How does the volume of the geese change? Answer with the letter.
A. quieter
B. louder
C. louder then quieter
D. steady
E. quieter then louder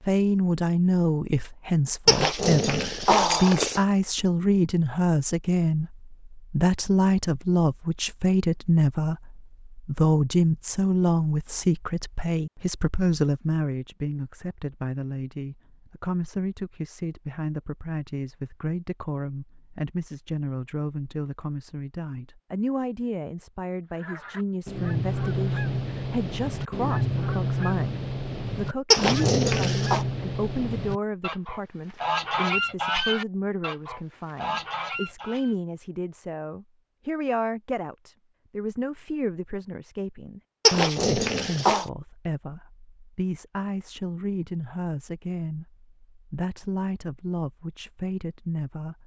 D.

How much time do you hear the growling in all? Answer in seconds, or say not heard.
4 s.